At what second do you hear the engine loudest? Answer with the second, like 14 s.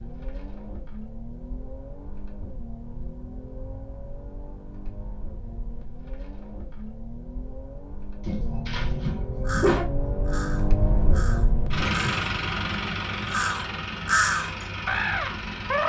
12 s.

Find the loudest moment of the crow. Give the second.
14 s.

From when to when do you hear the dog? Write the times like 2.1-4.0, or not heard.
8.2-9.8.